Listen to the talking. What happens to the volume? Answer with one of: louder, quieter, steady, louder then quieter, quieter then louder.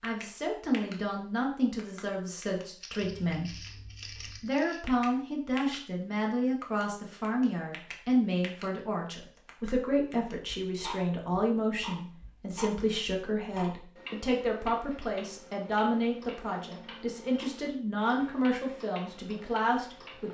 steady.